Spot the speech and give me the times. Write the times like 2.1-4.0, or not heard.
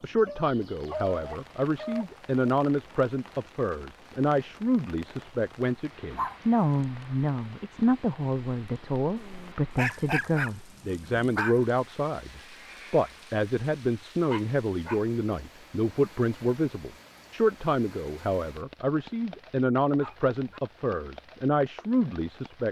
0.0-22.6.